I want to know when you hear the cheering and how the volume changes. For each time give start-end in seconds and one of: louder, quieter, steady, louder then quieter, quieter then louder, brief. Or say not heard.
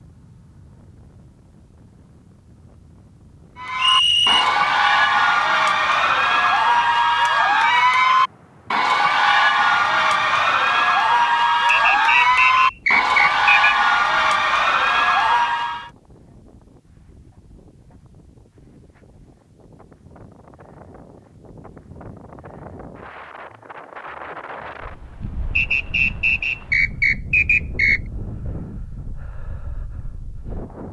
3.5-15.9 steady.